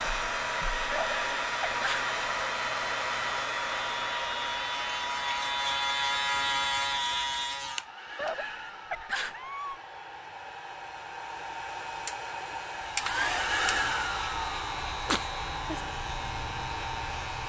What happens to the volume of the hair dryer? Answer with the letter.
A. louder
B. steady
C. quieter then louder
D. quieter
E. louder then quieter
C.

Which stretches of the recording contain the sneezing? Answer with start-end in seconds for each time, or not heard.
0.9-2.1, 8.2-9.8, 15.1-15.8.